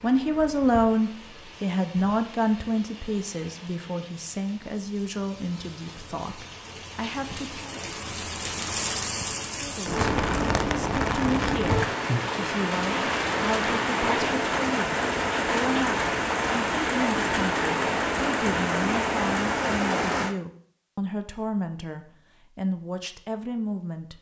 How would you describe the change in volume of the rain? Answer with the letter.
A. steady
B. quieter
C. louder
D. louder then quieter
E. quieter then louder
C.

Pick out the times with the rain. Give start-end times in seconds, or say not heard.
0.0-20.4.